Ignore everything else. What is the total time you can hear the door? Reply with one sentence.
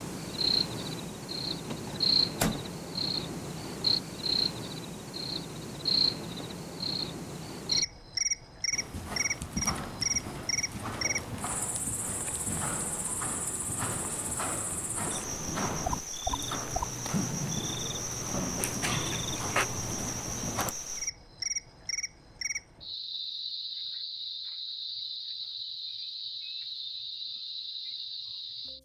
You can hear the door for 2 seconds altogether.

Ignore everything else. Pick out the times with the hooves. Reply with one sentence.
The hooves can be heard from 8.7 to 20.8 s.